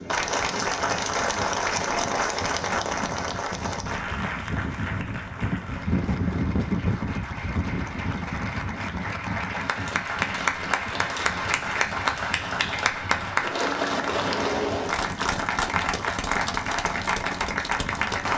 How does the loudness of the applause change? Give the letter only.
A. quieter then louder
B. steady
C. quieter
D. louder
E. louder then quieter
A.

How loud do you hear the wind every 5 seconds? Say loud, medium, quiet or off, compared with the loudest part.
medium, loud, medium, medium.